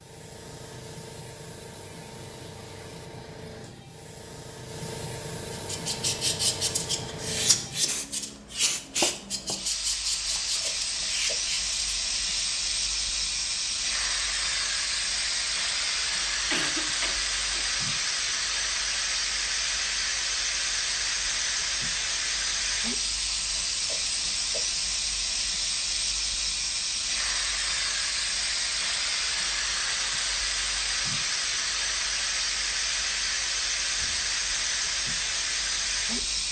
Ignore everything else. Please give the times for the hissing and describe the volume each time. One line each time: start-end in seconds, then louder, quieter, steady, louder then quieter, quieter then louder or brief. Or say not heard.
0.0-36.4 louder.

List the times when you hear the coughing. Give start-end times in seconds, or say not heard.
16.5-17.6.